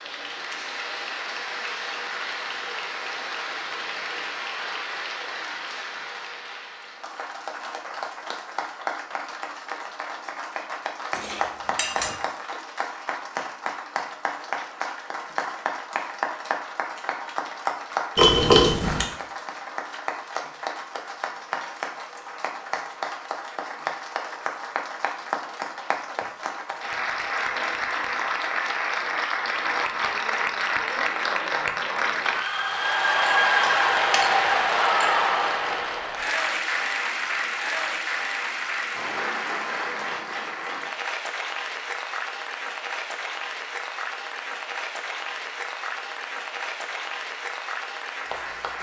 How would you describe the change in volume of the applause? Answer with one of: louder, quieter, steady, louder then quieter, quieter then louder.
louder then quieter.